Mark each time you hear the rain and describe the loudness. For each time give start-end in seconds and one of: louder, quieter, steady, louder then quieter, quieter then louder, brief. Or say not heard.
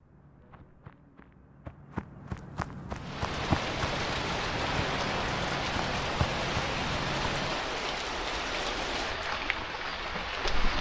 3.0-10.7 steady.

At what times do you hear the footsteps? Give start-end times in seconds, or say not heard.
0.0-7.5.